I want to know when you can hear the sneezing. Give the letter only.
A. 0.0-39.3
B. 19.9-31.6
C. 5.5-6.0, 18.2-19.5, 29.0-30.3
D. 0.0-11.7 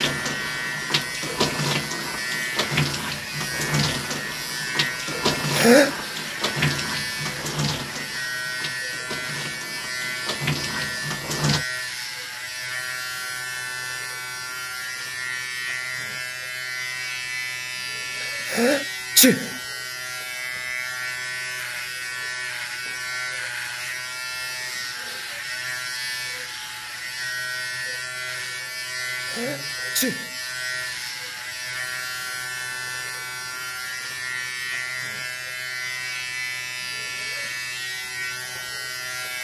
C.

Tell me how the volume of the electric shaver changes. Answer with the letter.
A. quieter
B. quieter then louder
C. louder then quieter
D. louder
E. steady
E.